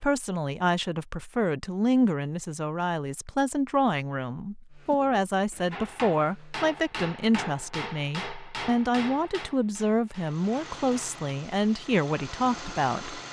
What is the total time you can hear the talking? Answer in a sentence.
You can hear the talking for 13 seconds altogether.